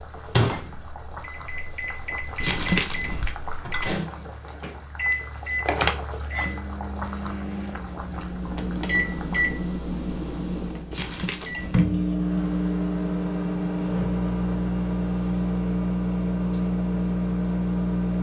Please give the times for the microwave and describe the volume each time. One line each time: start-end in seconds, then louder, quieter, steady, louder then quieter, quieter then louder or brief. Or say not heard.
0.0-18.1 louder.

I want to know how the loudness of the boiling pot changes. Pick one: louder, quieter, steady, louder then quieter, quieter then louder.
louder then quieter.